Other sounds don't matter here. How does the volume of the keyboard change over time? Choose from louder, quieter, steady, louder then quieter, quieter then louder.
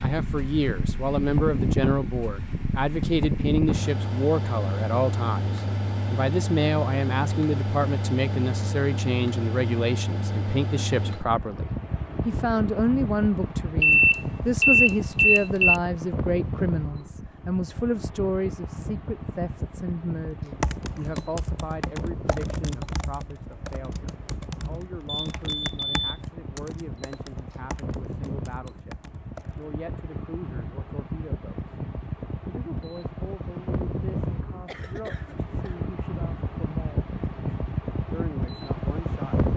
quieter.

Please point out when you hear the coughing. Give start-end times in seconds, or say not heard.
34.6-35.8.